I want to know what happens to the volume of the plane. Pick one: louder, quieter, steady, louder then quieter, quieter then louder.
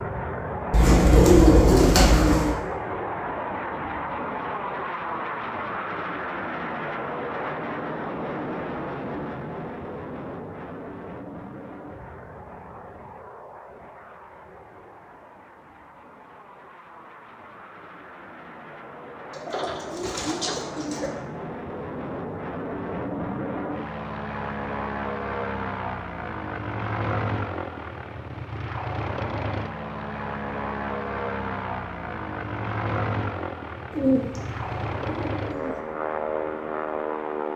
quieter then louder.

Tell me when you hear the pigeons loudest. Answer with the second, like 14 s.
1 s.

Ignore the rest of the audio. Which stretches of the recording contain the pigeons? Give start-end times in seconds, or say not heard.
0.7-2.5, 19.3-21.1, 33.9-35.8.